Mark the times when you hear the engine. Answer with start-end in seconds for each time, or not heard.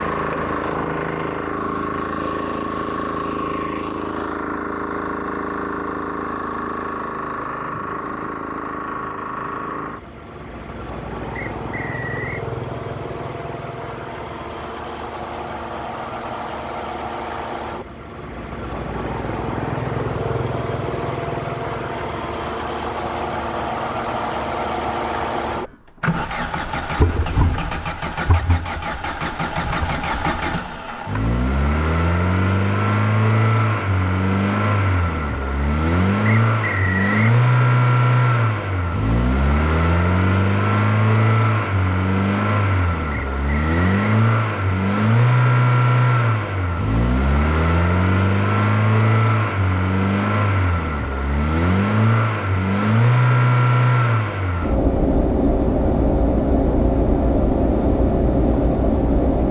0.0-59.4.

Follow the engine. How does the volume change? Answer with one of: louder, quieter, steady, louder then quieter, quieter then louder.
louder.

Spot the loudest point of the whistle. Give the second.
37 s.